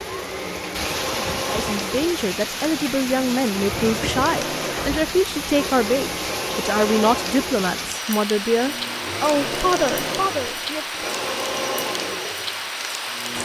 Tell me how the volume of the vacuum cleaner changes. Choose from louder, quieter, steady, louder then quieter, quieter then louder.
steady.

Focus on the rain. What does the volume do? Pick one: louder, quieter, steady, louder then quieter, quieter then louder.
steady.